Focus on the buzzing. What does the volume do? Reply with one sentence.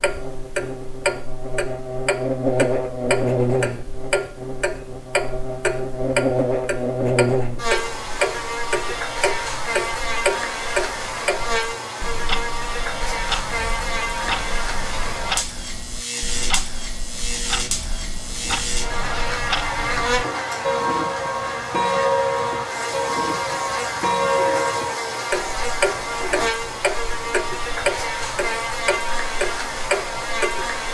The volume of the buzzing stays about the same.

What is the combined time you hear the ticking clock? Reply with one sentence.
You can hear the ticking clock for 31 seconds altogether.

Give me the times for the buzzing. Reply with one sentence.
The buzzing can be heard from 0.0 to 30.8 s.